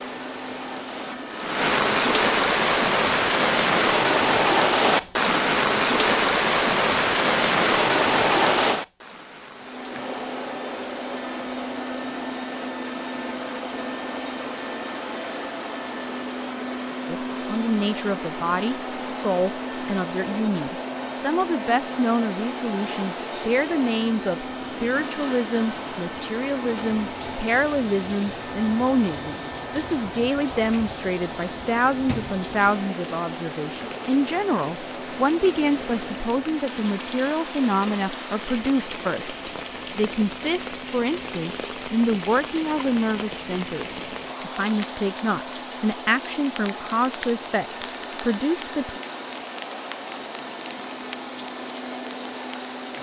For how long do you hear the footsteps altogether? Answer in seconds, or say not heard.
not heard.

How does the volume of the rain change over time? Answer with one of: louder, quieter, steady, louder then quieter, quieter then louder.
quieter then louder.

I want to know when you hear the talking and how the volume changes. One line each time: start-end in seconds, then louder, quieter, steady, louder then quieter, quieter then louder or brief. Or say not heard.
17.1-49.0 steady.